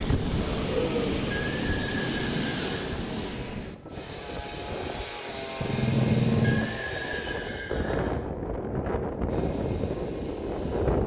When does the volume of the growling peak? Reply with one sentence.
The volume of the growling peaks at 6 seconds.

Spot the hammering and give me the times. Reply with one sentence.
You can't hear the hammering here.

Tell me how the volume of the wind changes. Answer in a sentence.
The volume of the wind goes down, then up.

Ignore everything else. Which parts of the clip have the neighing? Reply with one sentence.
You can hear the neighing from 1.3 to 2.9 s and from 6.4 to 8.2 s.